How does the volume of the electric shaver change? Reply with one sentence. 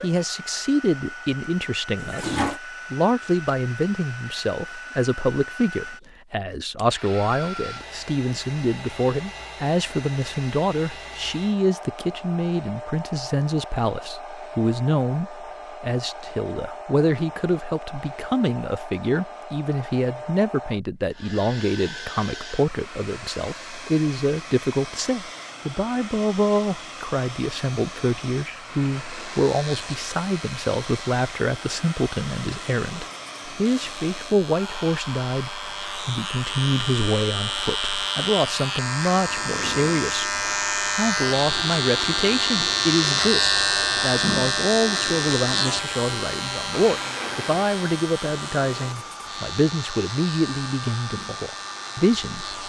The volume of the electric shaver goes up, then down.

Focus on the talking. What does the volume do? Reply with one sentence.
The volume of the talking stays about the same.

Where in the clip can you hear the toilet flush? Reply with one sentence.
The toilet flush can be heard from 1.9 to 2.6 s, from 28.8 to 29.5 s and from 46.7 to 47.6 s.